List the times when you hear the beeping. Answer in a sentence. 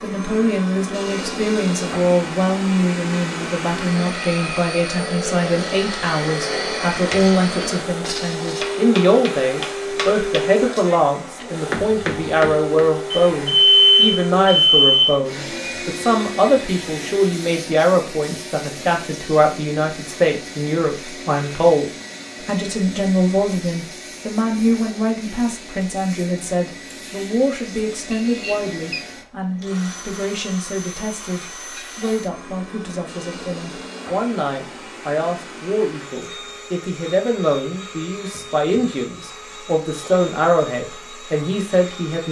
The beeping can be heard from 13.1 to 15.1 s and from 28.1 to 29.0 s.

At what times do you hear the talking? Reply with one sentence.
You can hear the talking from 0.0 to 42.2 s.